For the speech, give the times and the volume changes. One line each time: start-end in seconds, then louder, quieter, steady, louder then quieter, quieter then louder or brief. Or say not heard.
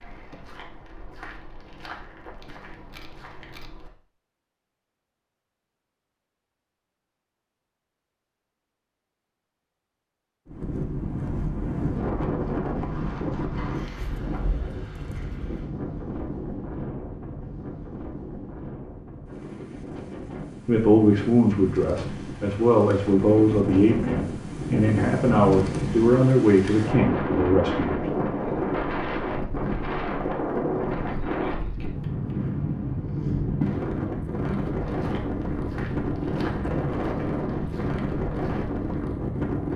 20.6-28.1 steady.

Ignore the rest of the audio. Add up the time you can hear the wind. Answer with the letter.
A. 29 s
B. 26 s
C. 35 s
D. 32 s
A.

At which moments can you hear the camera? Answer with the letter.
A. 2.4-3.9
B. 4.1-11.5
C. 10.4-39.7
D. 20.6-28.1
A.